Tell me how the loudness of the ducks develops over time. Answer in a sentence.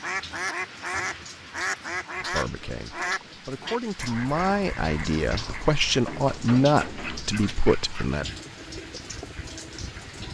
The volume of the ducks goes down.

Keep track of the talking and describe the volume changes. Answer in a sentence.
The volume of the talking goes up, then down.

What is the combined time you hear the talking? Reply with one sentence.
You can hear the talking for 6 seconds altogether.